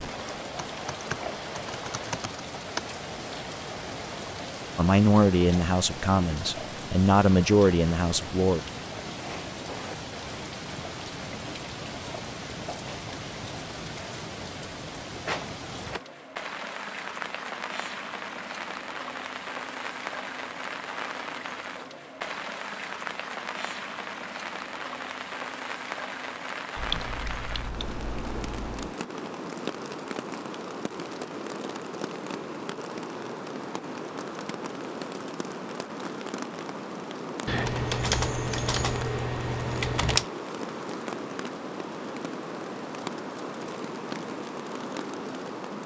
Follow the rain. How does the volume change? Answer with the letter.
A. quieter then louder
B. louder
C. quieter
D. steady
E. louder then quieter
D.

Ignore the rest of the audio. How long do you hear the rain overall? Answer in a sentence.
The rain can be heard for 46 seconds in total.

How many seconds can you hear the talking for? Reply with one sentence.
The talking can be heard for 4 seconds in total.